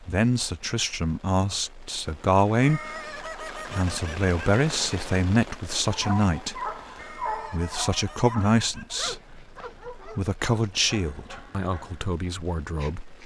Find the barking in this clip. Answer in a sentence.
The barking can be heard from 5.8 to 13.2 s.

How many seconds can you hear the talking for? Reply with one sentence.
The talking can be heard for 13 seconds in total.